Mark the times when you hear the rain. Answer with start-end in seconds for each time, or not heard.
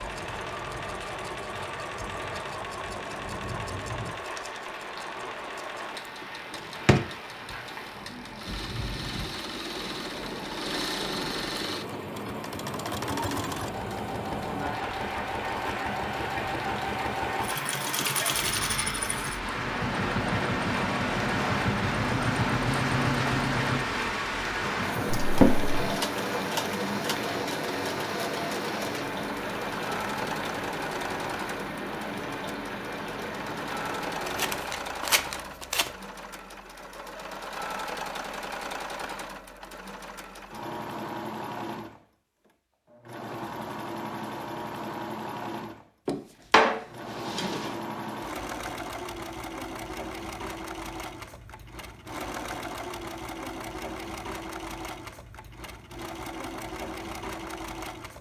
0.0-34.6.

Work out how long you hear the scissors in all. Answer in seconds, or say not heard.
2 s.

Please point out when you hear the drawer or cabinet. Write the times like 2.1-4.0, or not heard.
6.5-7.0, 25.1-25.7, 46.0-47.8.